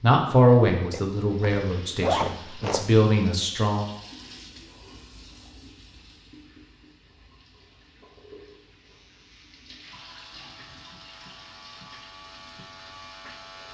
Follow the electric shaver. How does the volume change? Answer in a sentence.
The volume of the electric shaver goes up.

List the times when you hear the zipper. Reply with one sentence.
The zipper can be heard from 0.9 to 2.9 s.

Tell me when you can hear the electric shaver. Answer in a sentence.
The electric shaver can be heard from 8.9 to 13.6 s.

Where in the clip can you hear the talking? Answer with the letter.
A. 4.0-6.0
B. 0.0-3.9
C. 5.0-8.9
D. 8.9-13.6
B.